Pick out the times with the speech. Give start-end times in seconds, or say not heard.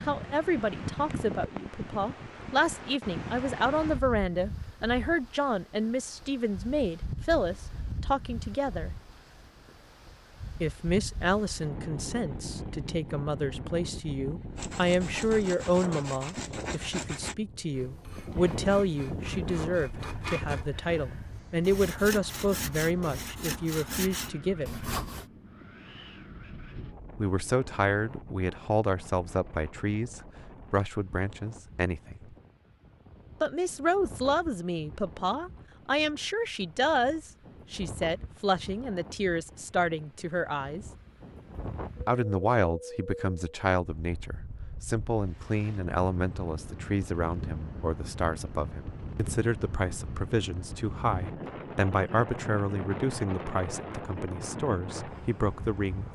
0.0-8.9, 10.6-24.9, 27.1-32.3, 33.4-40.9, 42.0-56.0.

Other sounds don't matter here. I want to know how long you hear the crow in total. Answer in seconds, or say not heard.
not heard.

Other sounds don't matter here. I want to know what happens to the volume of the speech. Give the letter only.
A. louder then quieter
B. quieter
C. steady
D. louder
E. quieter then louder
C.